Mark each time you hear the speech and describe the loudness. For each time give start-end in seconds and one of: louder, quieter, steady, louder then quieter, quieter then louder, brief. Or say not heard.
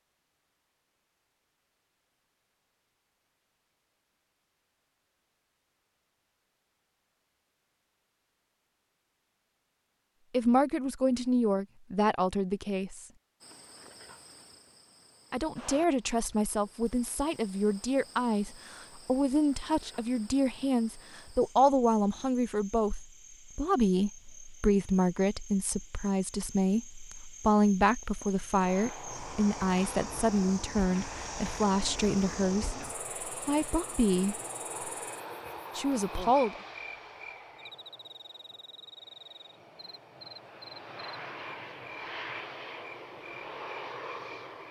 10.3-13.1 brief
15.3-34.4 steady
35.8-36.6 brief.